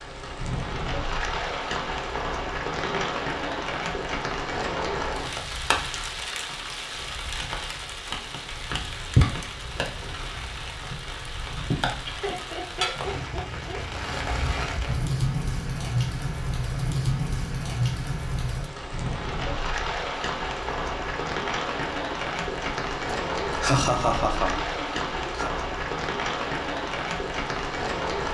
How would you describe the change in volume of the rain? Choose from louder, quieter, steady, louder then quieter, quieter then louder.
steady.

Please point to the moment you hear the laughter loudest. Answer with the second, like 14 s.
24 s.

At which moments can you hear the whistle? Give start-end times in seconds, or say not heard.
not heard.